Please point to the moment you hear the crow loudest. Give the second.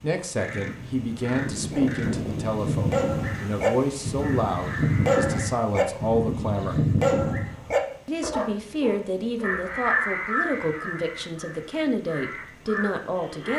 10 s.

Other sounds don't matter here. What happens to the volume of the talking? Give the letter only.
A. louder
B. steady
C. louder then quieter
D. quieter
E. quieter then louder
B.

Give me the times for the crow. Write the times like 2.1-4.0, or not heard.
0.2-5.5, 9.4-13.5.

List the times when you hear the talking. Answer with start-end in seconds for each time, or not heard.
0.0-6.8, 8.1-13.5.